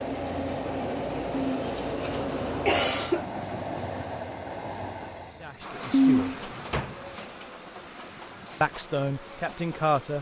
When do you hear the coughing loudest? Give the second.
6 s.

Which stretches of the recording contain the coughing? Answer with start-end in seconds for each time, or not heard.
1.3-3.2, 5.9-6.9.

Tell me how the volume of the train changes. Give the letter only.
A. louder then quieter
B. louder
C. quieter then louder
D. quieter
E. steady
D.